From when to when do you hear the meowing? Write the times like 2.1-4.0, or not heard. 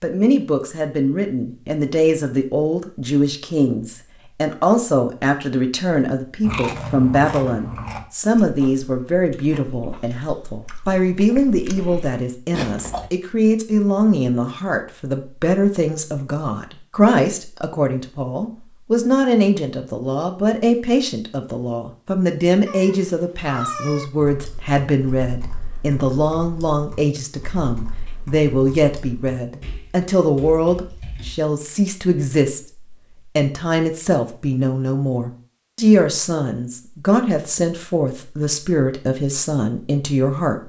22.6-24.1.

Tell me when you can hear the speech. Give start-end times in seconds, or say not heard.
0.0-40.6.